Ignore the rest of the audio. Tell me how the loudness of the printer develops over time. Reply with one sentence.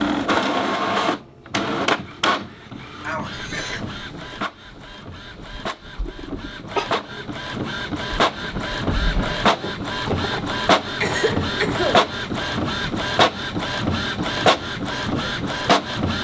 The loudness of the printer goes down, then up.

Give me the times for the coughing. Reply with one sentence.
The coughing can be heard from 3.0 to 3.9 s, from 6.0 to 7.0 s and from 11.0 to 12.1 s.